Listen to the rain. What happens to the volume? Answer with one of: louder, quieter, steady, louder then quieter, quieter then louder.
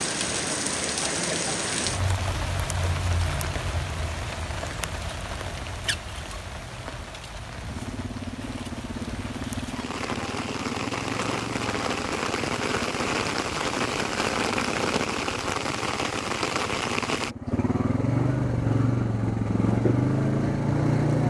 quieter then louder.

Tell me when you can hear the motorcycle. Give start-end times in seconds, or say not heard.
7.4-21.2.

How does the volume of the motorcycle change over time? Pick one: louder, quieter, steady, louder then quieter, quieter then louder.
louder.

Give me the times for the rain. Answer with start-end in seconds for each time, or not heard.
0.0-17.4.